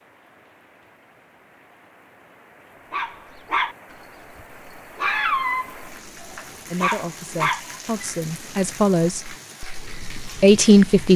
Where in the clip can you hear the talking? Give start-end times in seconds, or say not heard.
6.7-11.1.